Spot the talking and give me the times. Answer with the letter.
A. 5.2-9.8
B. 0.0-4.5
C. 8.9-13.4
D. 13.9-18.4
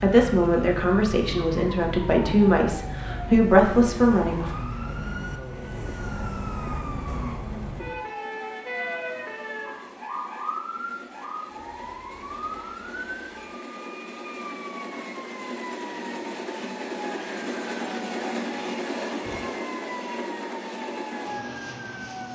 B.